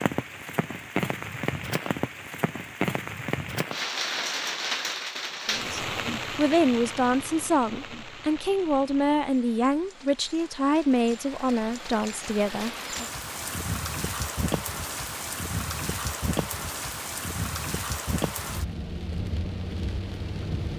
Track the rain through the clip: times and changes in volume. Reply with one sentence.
You can hear the rain from 0.0 to 20.7 s, getting quieter then louder.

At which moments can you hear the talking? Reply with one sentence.
The talking can be heard from 5.5 to 13.1 s.